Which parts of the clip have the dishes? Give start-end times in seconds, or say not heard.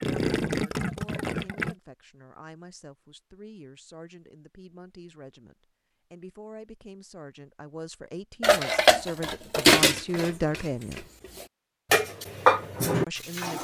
8.4-13.5.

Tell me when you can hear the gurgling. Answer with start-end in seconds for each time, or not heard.
0.0-1.8.